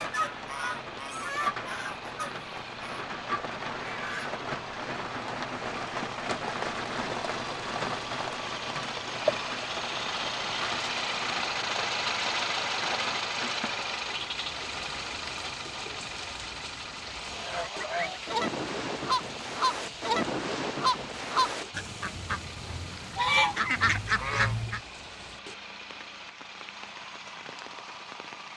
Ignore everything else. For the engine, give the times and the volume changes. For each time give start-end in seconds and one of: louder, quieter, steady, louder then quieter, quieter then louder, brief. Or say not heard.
0.1-28.5 louder then quieter.